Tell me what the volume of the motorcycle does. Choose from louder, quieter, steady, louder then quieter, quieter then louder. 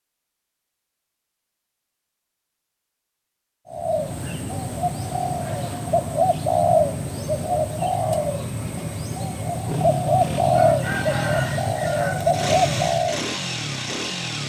quieter then louder.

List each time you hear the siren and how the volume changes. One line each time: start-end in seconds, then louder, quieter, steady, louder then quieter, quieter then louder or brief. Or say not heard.
not heard.